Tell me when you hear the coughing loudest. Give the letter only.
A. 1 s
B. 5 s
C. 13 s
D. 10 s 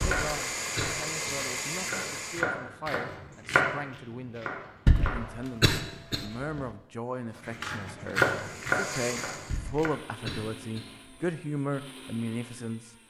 B.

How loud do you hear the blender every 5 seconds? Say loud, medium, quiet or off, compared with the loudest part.
loud, medium, quiet.